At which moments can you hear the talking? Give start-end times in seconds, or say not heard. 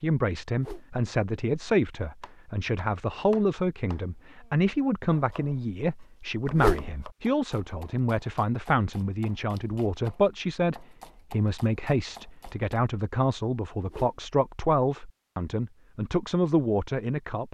0.0-17.4.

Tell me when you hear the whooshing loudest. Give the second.
7 s.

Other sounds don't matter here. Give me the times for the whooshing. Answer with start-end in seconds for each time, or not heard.
0.5-1.1, 6.5-7.0, 13.8-14.2.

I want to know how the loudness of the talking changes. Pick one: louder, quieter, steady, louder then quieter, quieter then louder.
steady.